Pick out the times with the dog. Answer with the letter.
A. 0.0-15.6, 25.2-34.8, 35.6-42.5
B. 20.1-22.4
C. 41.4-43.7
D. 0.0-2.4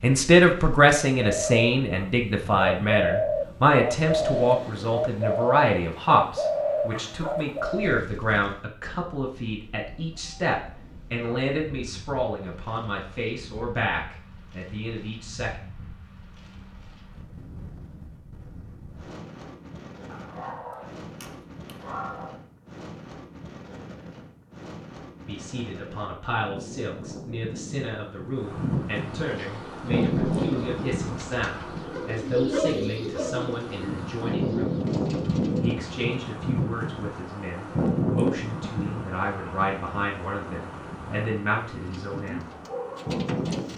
B.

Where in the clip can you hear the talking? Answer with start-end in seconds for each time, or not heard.
0.0-15.6, 25.2-34.8, 35.6-42.5.